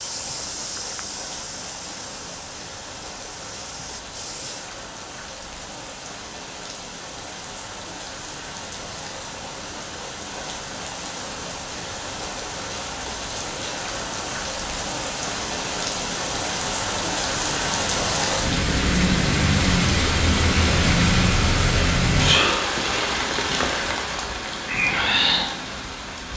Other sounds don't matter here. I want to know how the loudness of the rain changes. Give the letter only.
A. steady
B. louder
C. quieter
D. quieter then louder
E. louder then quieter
B.